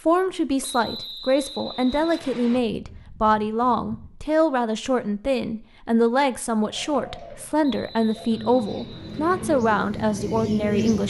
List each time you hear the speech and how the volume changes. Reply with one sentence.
The speech can be heard from 0.1 to 11.0 s, at a steady volume.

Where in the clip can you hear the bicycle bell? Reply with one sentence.
You can't hear the bicycle bell here.